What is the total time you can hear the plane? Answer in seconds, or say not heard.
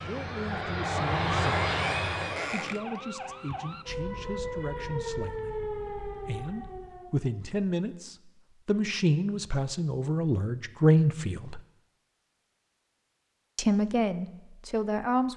2 s.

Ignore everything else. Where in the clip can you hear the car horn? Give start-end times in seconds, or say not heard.
not heard.